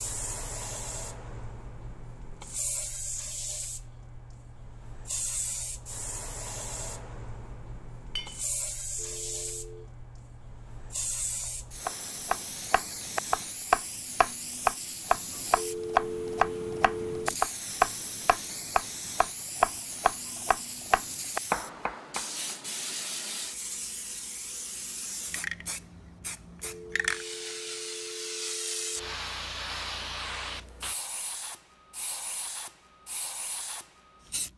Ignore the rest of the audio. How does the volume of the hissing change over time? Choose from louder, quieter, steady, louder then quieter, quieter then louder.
steady.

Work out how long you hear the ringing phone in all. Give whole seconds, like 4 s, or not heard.
5 s.